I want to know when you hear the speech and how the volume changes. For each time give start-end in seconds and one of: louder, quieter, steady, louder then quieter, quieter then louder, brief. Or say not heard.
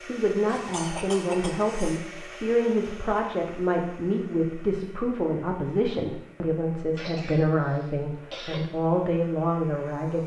0.1-10.2 steady.